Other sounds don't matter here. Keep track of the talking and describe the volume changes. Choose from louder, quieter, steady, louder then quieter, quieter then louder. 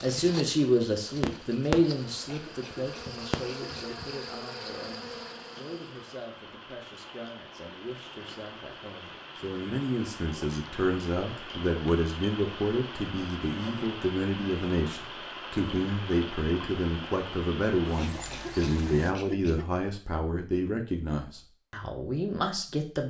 quieter then louder.